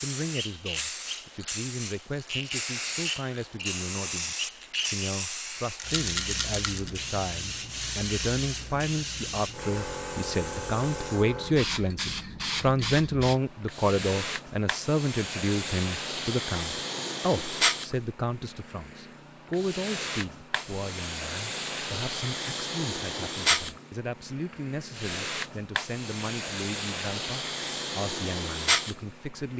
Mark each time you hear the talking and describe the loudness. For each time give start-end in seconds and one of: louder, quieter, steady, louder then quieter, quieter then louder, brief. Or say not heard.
0.0-29.5 louder then quieter.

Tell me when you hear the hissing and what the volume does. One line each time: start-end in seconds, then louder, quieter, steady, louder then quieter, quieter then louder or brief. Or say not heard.
0.0-29.5 steady.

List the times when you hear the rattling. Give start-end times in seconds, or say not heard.
5.8-6.9.